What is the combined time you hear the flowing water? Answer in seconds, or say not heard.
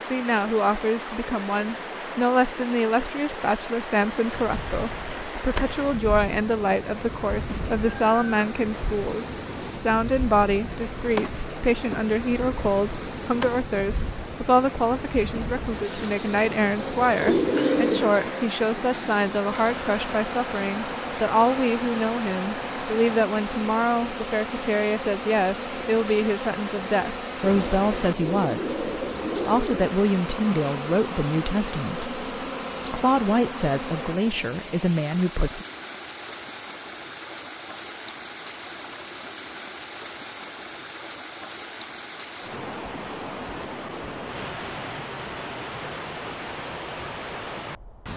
48 s.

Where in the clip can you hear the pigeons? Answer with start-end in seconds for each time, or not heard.
17.1-18.4, 27.4-30.0.